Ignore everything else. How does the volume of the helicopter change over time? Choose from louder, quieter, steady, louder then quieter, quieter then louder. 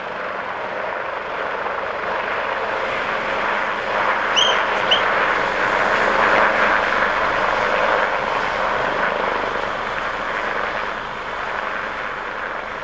louder then quieter.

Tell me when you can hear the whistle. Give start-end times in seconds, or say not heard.
4.3-5.0.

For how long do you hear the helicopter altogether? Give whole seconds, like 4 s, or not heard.
13 s.